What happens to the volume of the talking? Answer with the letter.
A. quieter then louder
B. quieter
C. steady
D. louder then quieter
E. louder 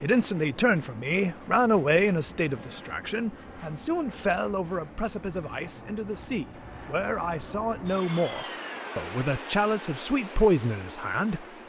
A.